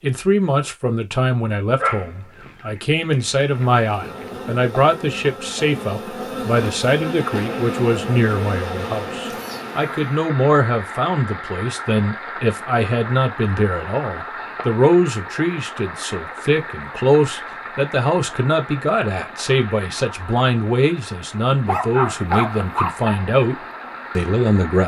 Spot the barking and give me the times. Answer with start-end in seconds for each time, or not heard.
1.8-4.3, 21.6-23.1.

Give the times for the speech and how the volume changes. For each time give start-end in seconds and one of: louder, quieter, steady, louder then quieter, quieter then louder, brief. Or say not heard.
0.0-23.6 steady
24.1-24.8 brief.